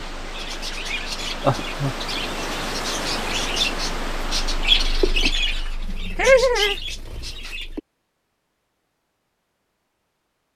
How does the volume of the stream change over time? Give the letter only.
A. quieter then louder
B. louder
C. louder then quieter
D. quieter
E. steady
C.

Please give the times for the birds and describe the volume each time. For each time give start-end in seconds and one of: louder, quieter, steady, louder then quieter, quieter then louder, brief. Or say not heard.
0.2-7.8 louder then quieter.